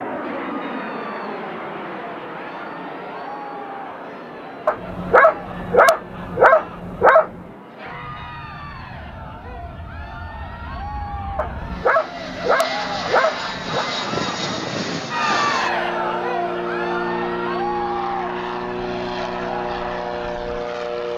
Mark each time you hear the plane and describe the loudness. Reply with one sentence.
You can hear the plane from 0.0 to 21.1 s, getting quieter then louder.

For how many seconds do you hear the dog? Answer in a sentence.
The dog can be heard for 5 seconds in total.